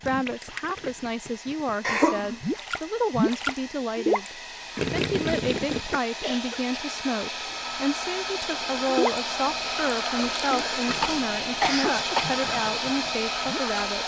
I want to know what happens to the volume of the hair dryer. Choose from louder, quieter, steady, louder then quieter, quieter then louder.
louder.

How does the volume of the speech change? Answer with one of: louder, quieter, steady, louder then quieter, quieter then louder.
steady.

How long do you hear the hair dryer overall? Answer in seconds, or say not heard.
14 s.